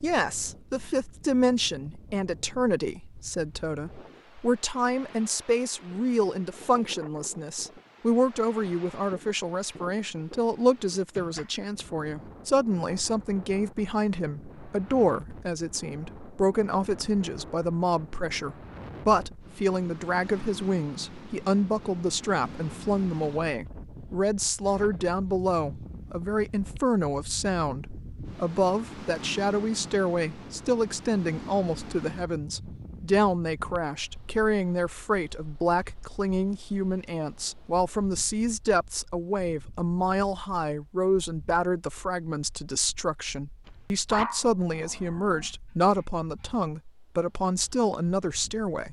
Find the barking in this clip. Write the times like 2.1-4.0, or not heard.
43.6-46.0.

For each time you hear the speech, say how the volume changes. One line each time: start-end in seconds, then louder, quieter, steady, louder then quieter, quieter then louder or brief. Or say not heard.
0.0-48.8 steady.